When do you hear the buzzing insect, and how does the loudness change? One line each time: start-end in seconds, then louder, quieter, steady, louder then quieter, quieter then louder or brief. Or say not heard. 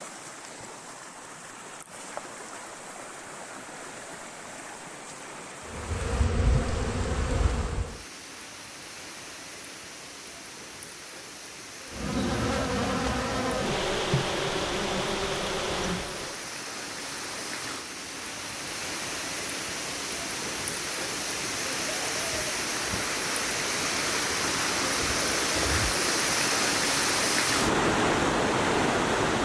5.7-8.1 brief
11.9-16.4 steady.